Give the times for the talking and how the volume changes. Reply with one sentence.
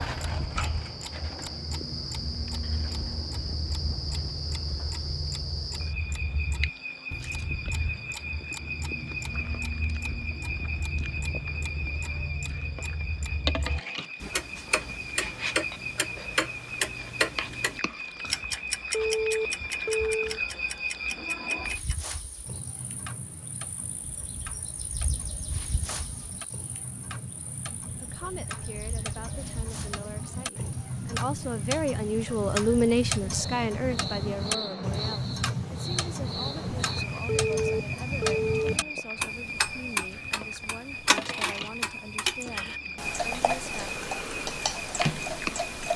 You can hear the talking from 27.8 to 43.9 s, getting louder then quieter.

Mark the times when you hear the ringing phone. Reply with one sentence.
You can hear the ringing phone from 18.9 to 20.4 s and from 37.2 to 38.8 s.